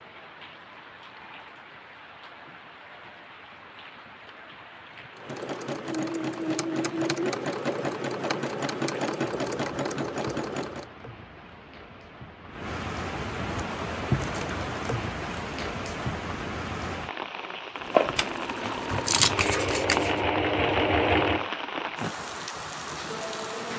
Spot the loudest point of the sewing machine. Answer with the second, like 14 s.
21 s.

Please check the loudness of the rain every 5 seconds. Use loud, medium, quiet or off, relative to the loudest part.
quiet, quiet, loud, loud, loud.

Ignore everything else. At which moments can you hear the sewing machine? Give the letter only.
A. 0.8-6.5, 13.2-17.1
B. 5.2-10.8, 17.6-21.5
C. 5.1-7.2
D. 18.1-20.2
B.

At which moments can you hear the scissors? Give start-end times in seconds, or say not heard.
18.1-20.2.